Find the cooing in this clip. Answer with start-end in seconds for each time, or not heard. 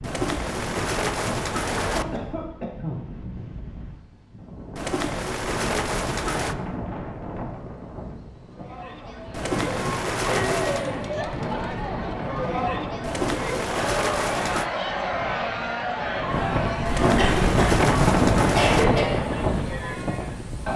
0.0-2.0, 4.8-6.5, 9.3-10.9, 13.0-14.7, 16.9-18.9.